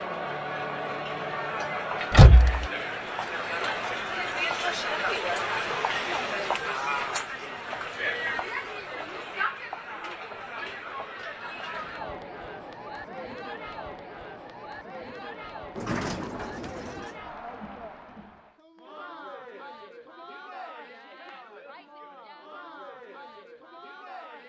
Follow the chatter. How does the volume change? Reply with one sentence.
The loudness of the chatter goes down.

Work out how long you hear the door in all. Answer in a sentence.
You can hear the door for 2 seconds altogether.